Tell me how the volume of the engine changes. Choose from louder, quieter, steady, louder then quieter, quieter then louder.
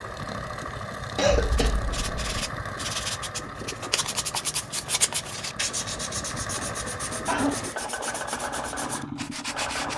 quieter then louder.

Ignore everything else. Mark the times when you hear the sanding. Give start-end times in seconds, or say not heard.
1.5-9.9.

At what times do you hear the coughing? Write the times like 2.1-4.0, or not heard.
1.1-2.4, 6.5-7.7.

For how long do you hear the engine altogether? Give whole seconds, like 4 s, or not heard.
10 s.